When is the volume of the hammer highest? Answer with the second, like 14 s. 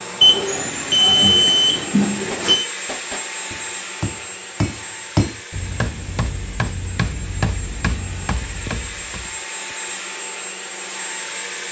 5 s.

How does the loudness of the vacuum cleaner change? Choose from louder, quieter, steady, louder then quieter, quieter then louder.
quieter then louder.